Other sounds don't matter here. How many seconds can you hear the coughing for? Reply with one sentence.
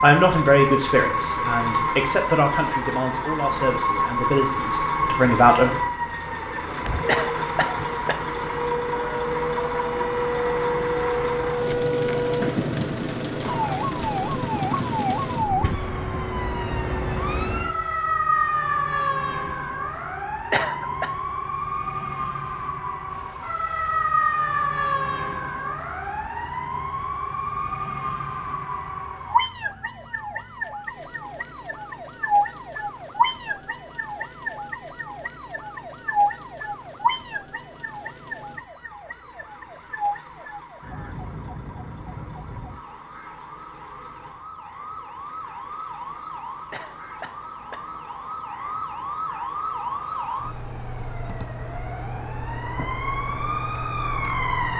The coughing can be heard for 3 seconds in total.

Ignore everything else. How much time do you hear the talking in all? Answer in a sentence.
The talking can be heard for 6 seconds in total.